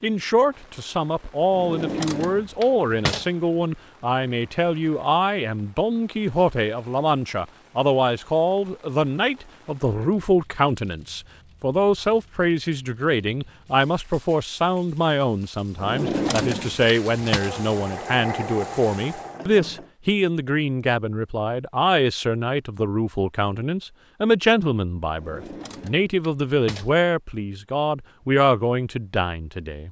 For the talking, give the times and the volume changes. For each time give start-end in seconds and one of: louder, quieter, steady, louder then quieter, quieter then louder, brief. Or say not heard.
0.0-29.8 steady.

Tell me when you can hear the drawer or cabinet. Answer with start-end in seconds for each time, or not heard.
1.5-3.2, 15.8-17.4, 25.1-26.9.